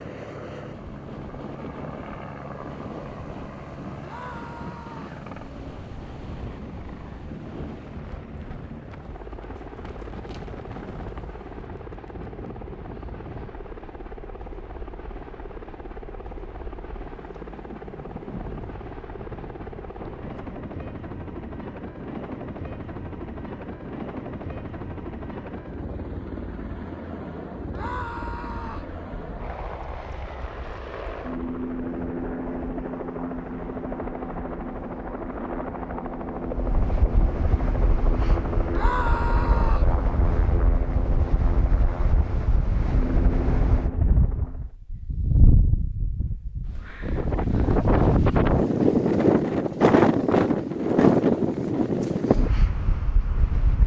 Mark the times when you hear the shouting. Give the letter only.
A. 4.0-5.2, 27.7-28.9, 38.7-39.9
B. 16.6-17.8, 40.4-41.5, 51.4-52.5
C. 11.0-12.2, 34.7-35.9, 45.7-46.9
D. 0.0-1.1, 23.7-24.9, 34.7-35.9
A.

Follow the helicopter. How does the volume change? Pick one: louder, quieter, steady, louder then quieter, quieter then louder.
louder.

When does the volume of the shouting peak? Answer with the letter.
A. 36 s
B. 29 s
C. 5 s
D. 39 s
D.